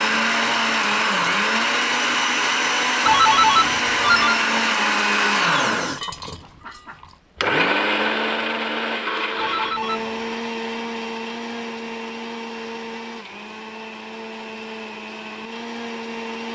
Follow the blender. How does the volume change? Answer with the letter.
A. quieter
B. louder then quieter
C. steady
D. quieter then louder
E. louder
A.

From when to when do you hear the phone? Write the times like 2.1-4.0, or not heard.
3.0-4.5, 9.3-10.3.